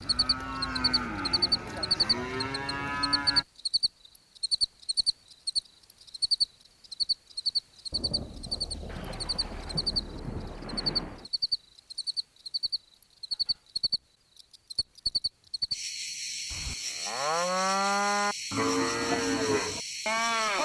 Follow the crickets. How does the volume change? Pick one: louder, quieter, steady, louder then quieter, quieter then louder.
quieter.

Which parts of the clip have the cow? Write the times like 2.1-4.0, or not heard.
0.0-3.5, 16.5-20.6.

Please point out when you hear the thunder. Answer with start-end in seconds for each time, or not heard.
7.9-11.3.